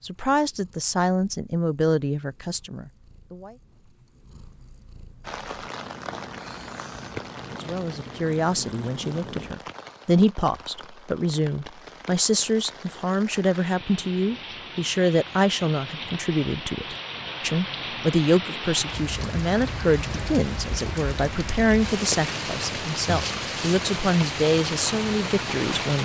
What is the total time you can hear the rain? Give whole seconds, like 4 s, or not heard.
21 s.